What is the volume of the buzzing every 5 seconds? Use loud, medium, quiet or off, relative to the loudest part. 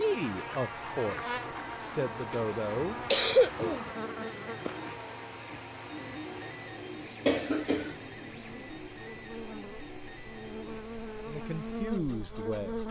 loud, medium, loud.